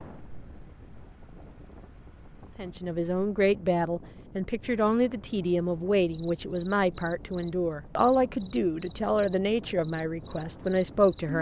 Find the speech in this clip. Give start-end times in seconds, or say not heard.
2.5-11.3.